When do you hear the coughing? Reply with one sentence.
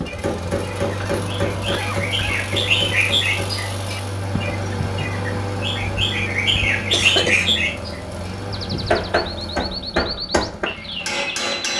You can hear the coughing from 1.0 to 2.4 s and from 6.9 to 7.7 s.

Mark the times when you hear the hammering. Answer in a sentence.
The hammering can be heard from 0.0 to 3.5 s and from 8.8 to 11.7 s.